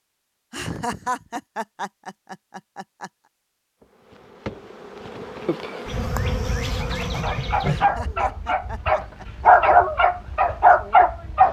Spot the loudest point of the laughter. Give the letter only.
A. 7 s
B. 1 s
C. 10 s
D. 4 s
B.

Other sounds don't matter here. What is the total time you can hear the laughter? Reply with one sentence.
You can hear the laughter for 5 seconds altogether.